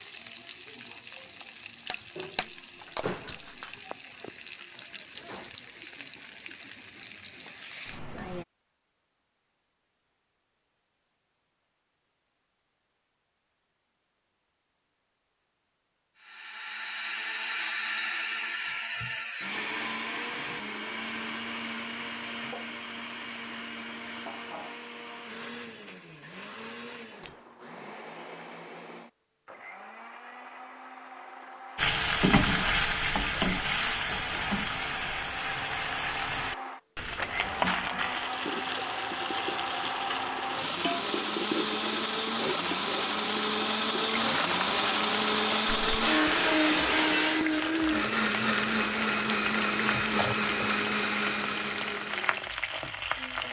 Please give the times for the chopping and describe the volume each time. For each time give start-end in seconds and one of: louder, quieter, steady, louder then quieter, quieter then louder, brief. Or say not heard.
not heard.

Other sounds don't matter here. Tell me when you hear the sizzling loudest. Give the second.
32 s.